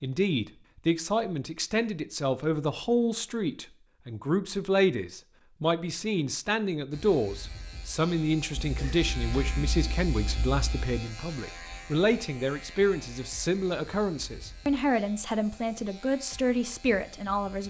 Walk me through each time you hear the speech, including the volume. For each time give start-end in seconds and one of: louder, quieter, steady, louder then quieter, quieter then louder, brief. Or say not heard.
0.0-17.6 steady.